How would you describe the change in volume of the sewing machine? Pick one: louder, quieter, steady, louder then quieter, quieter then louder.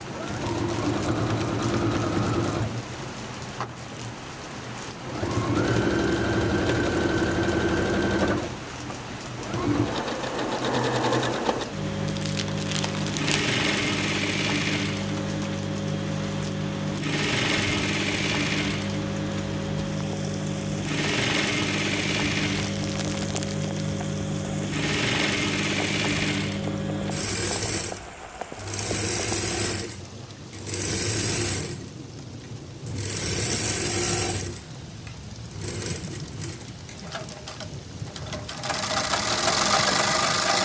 steady.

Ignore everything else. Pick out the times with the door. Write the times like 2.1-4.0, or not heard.
not heard.